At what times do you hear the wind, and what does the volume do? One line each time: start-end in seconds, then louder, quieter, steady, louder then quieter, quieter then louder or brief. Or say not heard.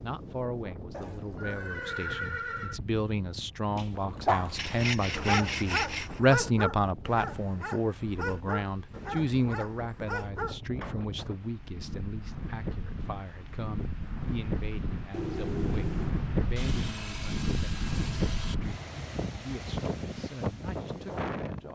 0.0-21.6 louder.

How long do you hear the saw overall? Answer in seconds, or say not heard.
4 s.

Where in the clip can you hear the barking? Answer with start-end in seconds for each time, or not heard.
3.8-10.9.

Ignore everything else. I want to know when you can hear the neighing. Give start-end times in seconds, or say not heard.
0.9-2.8, 15.1-16.1.